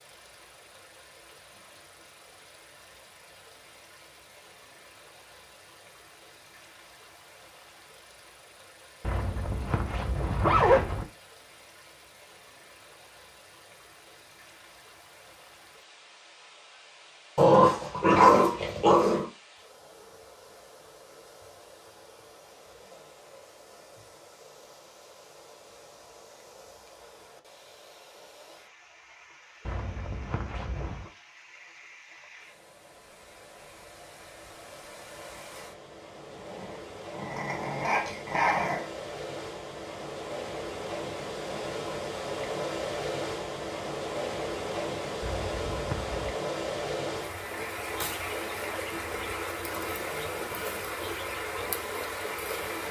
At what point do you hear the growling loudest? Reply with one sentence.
The volume of the growling peaks at 18 seconds.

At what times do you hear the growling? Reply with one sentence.
The growling can be heard from 17.4 to 19.2 s and from 36.3 to 38.9 s.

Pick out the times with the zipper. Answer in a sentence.
You can hear the zipper from 9.0 to 11.1 s, from 29.6 to 31.1 s and from 45.2 to 46.4 s.